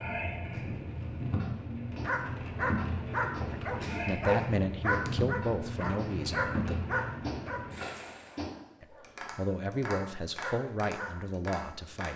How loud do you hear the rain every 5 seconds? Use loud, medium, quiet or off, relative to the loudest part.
loud, loud, off.